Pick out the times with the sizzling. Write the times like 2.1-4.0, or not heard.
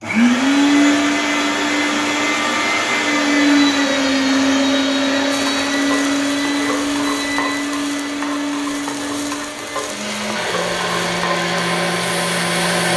5.3-12.9.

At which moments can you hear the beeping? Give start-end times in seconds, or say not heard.
not heard.